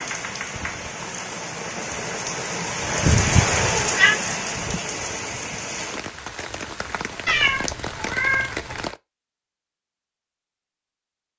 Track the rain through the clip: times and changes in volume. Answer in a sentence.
You can hear the rain from 0.0 to 9.0 s, getting louder then quieter.